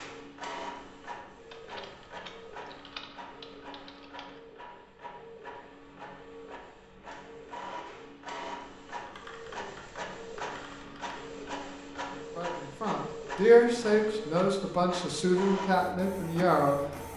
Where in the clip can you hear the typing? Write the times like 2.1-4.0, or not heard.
1.5-4.4, 9.1-11.2.